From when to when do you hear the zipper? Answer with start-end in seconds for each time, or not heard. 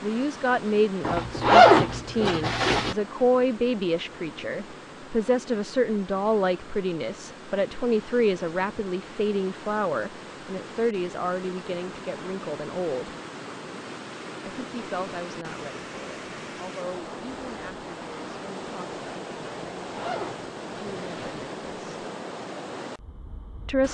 1.1-3.0, 19.8-21.4.